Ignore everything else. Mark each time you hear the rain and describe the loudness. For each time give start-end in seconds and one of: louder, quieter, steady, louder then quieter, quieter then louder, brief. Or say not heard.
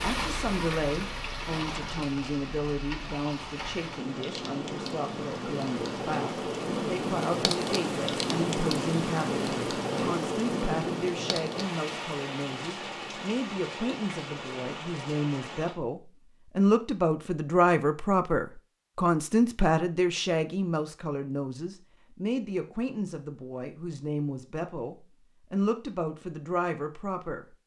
0.0-15.8 louder then quieter.